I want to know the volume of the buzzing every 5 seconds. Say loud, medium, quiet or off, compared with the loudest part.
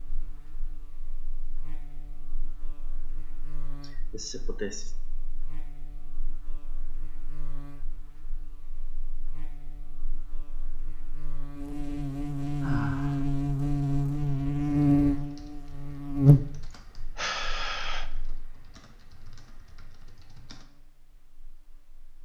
quiet, quiet, loud, loud, quiet.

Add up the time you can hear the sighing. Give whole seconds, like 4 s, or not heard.
3 s.